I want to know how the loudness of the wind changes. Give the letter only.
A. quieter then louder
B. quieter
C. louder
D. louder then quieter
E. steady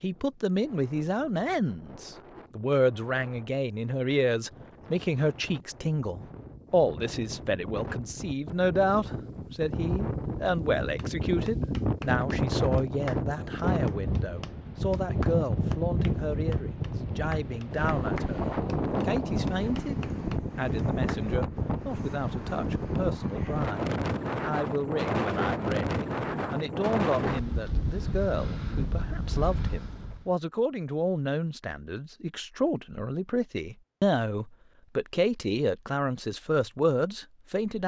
C.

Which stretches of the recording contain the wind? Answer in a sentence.
You can hear the wind from 0.0 to 30.3 s.